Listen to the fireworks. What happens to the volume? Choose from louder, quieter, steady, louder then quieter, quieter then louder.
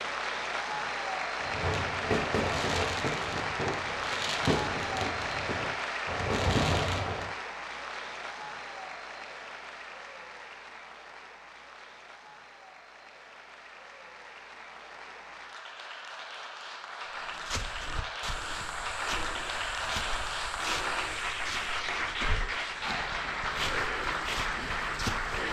quieter then louder.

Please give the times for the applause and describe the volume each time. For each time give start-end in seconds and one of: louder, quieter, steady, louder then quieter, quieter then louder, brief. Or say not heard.
0.0-25.4 quieter then louder.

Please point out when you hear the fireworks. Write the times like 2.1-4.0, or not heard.
1.4-7.3.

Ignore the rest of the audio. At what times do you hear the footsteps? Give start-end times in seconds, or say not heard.
17.1-25.4.